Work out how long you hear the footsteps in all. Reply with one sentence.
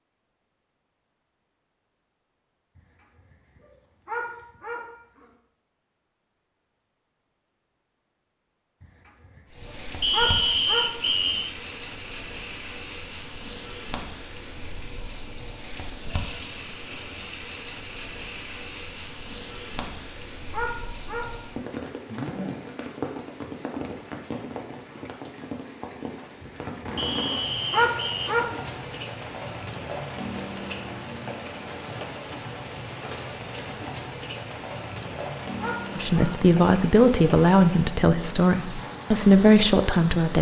The footsteps can't be heard in this clip.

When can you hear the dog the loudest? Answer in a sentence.
The volume of the dog peaks at 28 seconds.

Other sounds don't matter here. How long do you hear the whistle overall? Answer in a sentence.
You can hear the whistle for 3 seconds altogether.